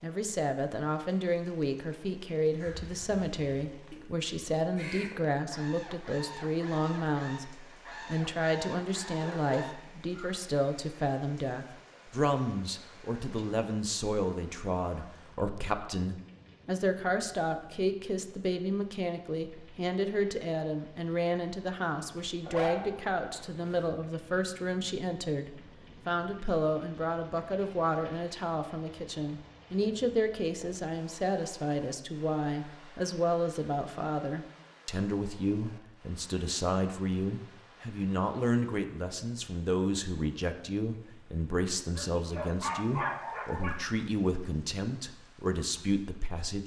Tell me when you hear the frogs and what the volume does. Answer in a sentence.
The frogs can't be heard in this clip.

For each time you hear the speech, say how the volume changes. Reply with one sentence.
You can hear the speech from 0.0 to 46.6 s, at a steady volume.